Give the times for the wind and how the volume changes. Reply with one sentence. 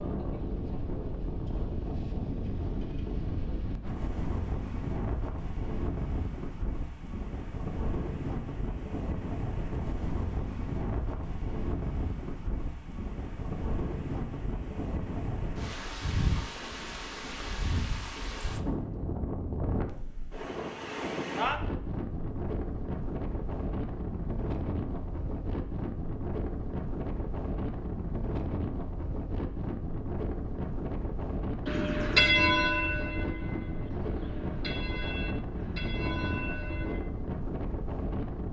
You can hear the wind from 0.0 to 38.4 s, at a steady volume.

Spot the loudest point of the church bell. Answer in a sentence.
The loudest moment of the church bell is at 32 seconds.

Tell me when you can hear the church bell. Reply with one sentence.
The church bell can be heard from 31.6 to 37.0 s.